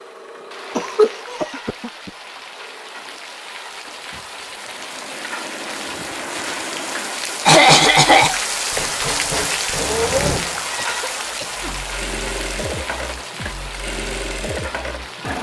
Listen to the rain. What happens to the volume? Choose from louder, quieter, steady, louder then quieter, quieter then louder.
louder then quieter.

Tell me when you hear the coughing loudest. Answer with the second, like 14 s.
8 s.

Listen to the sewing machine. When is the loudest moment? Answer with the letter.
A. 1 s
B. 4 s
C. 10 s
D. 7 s
C.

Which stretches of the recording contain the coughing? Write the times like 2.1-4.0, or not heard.
0.8-2.1, 7.5-8.4, 10.8-11.8.